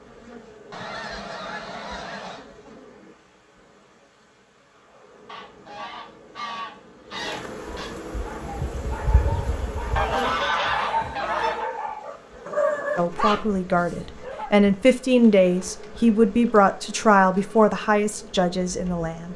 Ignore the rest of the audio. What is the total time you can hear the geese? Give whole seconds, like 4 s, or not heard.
8 s.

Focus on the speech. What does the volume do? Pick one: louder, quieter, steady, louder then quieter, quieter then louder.
louder then quieter.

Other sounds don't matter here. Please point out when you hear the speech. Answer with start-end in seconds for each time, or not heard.
12.9-19.3.